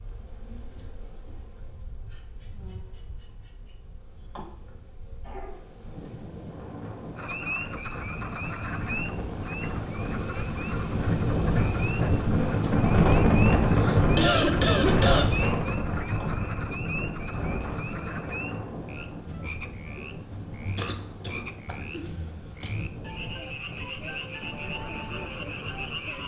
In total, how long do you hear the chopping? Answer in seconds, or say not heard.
not heard.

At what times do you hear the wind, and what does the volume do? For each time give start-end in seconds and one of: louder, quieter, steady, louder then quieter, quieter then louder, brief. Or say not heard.
0.0-26.2 louder then quieter.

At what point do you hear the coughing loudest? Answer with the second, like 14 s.
14 s.